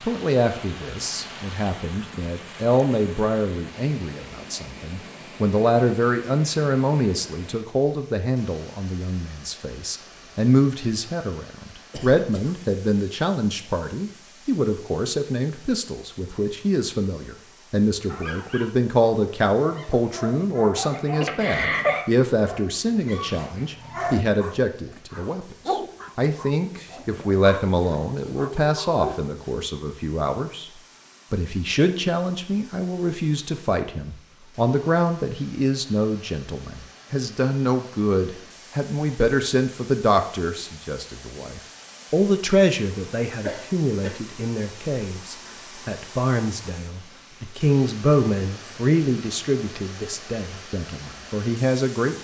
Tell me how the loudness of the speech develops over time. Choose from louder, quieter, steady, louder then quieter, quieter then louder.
steady.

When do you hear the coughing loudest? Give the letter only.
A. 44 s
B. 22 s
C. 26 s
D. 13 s
B.